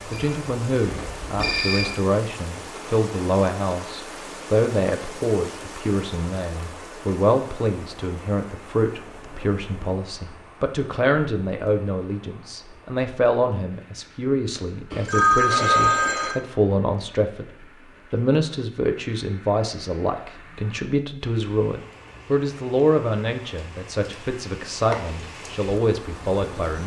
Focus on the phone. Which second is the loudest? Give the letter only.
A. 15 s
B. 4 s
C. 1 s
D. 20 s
A.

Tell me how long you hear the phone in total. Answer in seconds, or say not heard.
3 s.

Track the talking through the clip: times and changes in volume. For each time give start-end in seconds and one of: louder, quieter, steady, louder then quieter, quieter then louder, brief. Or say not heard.
0.1-26.8 steady.